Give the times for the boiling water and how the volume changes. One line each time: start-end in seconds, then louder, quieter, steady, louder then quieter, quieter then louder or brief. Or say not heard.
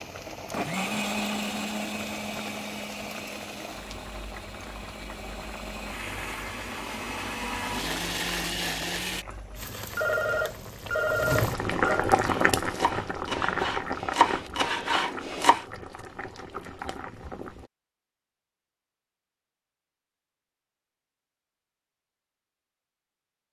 0.0-17.7 louder then quieter.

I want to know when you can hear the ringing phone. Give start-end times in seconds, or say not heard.
9.9-12.1.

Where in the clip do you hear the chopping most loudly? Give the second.
14 s.